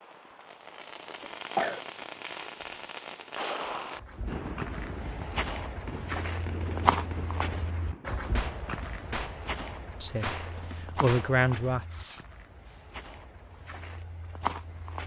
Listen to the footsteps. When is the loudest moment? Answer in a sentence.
The volume of the footsteps peaks at 7 seconds.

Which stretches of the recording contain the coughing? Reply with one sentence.
The coughing can be heard from 1.2 to 1.8 s.